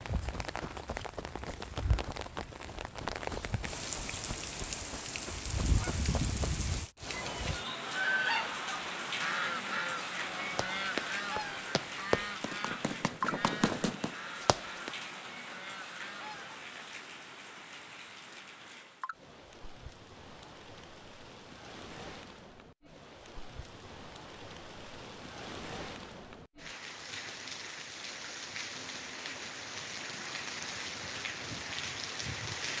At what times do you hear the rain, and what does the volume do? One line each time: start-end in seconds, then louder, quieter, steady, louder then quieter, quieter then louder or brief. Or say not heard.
0.0-32.7 quieter then louder.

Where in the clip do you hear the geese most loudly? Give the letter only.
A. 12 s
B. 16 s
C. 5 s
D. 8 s
D.